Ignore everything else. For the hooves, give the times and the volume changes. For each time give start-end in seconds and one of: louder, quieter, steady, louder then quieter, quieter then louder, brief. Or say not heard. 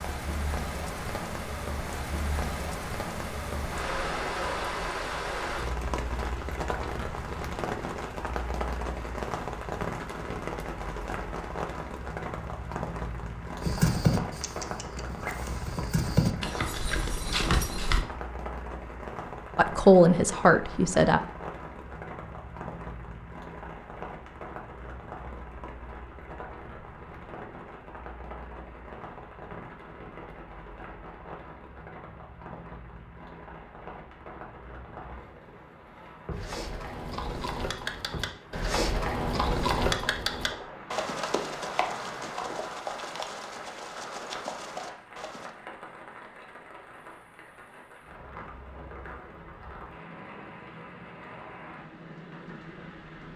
13.6-18.1 quieter then louder
36.3-45.5 louder then quieter.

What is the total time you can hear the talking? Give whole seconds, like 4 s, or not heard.
2 s.